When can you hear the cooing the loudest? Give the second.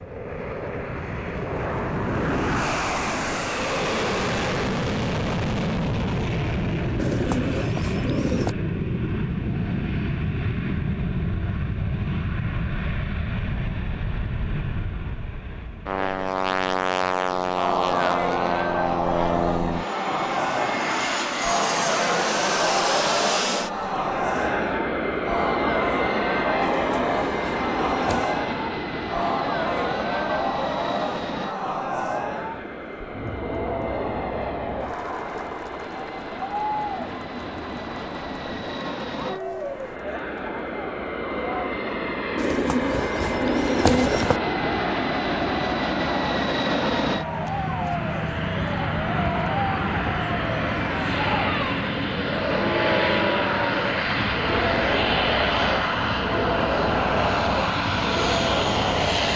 44 s.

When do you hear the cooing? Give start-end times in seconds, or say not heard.
7.0-8.6, 26.6-28.2, 42.4-44.4.